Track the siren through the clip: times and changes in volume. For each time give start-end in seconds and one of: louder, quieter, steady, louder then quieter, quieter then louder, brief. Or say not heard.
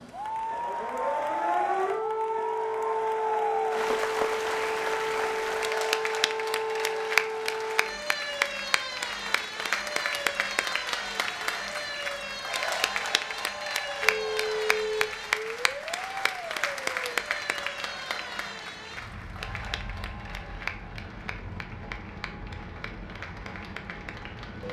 0.0-24.6 quieter.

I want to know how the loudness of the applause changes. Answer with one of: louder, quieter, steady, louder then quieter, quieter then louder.
quieter.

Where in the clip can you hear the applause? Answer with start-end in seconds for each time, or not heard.
0.1-24.6.